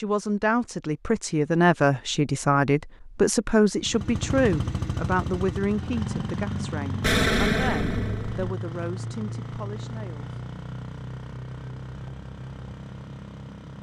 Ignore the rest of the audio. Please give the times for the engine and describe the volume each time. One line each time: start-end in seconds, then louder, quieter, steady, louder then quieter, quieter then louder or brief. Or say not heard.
3.8-13.7 quieter.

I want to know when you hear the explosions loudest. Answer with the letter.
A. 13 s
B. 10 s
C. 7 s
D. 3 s
C.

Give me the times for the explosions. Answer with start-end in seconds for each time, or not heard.
7.0-8.5.